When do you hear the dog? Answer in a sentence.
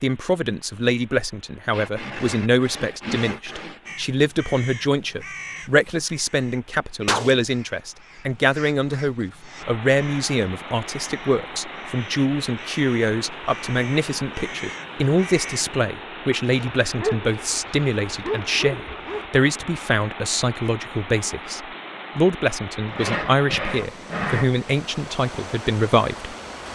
You can hear the dog from 16.6 to 19.2 s.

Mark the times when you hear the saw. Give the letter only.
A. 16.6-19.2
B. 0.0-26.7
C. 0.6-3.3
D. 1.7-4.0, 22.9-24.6
D.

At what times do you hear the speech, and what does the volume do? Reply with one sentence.
You can hear the speech from 0.0 to 26.7 s, at a steady volume.